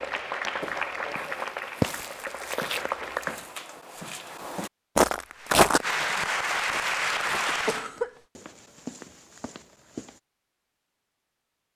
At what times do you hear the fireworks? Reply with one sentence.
The fireworks can't be heard in this clip.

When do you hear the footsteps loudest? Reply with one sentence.
The loudest moment of the footsteps is at 6 seconds.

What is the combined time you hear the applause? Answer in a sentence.
You can hear the applause for 6 seconds altogether.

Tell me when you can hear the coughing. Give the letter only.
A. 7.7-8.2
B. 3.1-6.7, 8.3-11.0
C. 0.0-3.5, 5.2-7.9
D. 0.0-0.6
A.